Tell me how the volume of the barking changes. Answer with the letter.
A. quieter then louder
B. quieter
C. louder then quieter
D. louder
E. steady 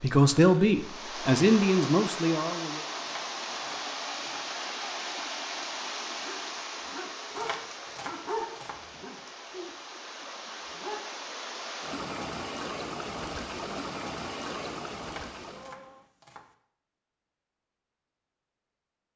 C.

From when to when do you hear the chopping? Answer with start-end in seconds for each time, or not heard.
3.0-4.5, 7.3-8.8, 14.9-16.5.